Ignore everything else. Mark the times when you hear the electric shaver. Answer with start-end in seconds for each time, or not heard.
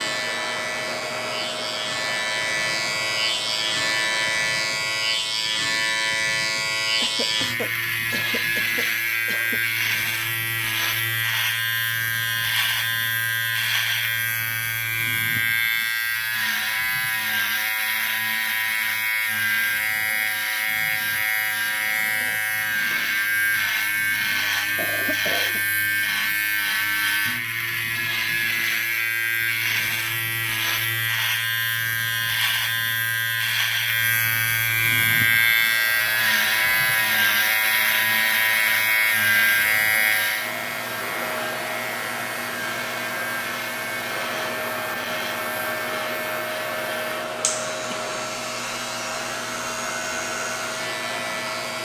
0.0-51.7.